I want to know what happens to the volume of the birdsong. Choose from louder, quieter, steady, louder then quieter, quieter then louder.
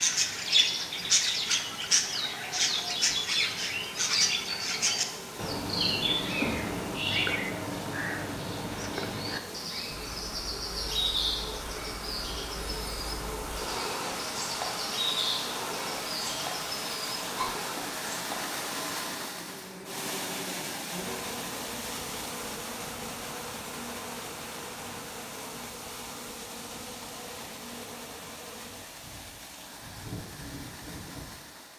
quieter.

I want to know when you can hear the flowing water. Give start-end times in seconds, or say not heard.
0.0-31.7.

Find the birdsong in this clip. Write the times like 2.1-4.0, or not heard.
0.0-17.6.